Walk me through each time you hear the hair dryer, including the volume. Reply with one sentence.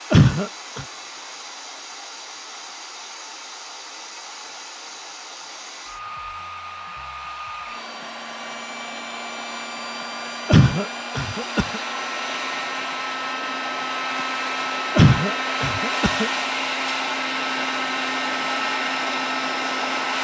You can hear the hair dryer from 0.0 to 20.1 s, getting louder.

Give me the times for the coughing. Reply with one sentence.
The coughing can be heard from 0.1 to 0.8 s, from 10.4 to 11.8 s and from 14.9 to 16.3 s.